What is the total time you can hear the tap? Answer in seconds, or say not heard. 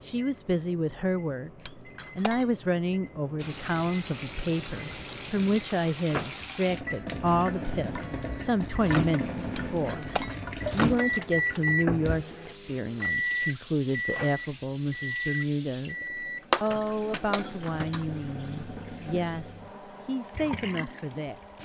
18 s.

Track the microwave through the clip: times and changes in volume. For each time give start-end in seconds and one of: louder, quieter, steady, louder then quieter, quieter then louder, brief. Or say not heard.
0.0-21.6 louder then quieter.